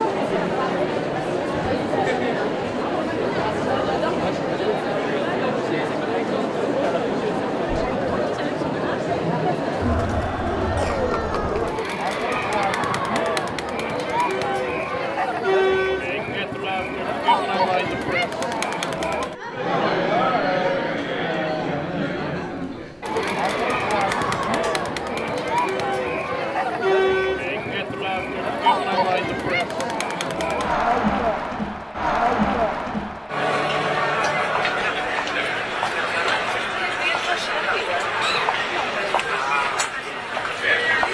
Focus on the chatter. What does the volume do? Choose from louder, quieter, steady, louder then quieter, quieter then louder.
steady.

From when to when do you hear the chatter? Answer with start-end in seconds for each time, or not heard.
0.0-41.1.